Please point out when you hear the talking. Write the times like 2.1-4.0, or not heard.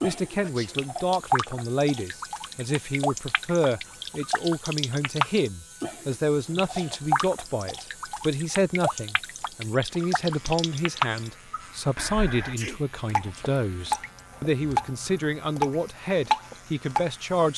0.0-17.5.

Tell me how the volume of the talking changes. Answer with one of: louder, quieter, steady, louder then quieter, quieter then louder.
steady.